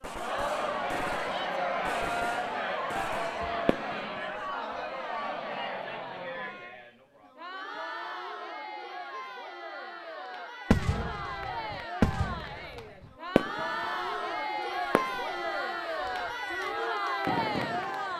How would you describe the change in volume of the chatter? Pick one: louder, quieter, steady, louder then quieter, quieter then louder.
quieter then louder.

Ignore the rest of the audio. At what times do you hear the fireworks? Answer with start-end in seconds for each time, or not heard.
0.0-4.4, 10.7-14.2, 14.8-16.6, 17.2-18.1.